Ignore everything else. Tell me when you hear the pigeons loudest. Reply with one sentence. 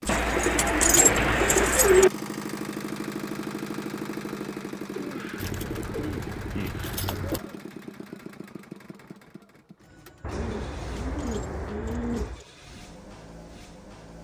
The loudest moment of the pigeons is at 2 seconds.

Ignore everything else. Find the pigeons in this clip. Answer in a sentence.
You can hear the pigeons from 0.1 to 2.1 s, from 5.0 to 7.6 s and from 10.2 to 12.4 s.